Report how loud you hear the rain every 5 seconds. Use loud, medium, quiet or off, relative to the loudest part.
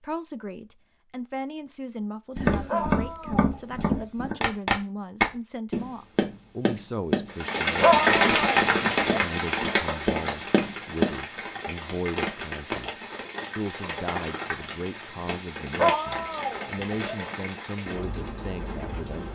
off, loud, medium, quiet.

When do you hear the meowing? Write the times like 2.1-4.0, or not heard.
not heard.